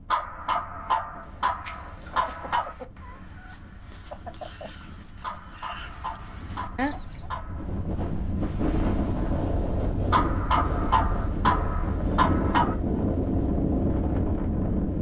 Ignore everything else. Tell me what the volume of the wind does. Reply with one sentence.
The volume of the wind goes up.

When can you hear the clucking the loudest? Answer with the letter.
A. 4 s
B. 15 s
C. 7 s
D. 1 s
C.